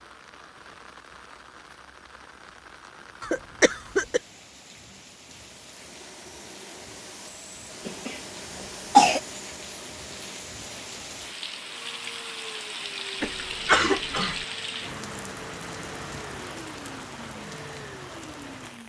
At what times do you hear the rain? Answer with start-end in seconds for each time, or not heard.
0.0-18.8.